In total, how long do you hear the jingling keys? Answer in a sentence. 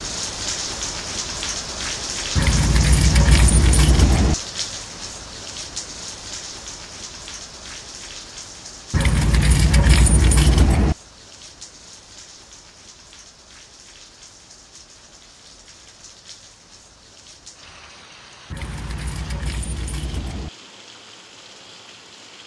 You can hear the jingling keys for 6 seconds altogether.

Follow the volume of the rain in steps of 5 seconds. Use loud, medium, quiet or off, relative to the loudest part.
loud, medium, quiet, quiet, quiet.